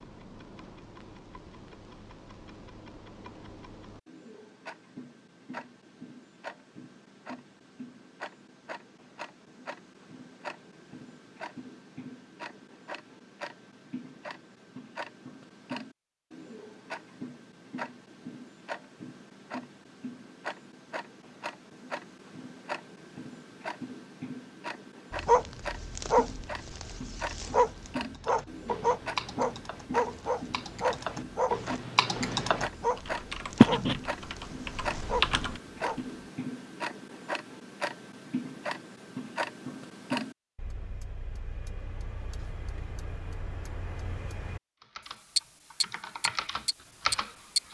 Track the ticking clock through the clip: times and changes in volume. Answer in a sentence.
You can hear the ticking clock from 0.0 to 47.7 s, getting louder.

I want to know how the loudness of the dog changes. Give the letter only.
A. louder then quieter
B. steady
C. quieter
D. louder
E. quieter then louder
C.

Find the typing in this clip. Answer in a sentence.
You can hear the typing from 28.2 to 35.6 s and from 44.8 to 47.7 s.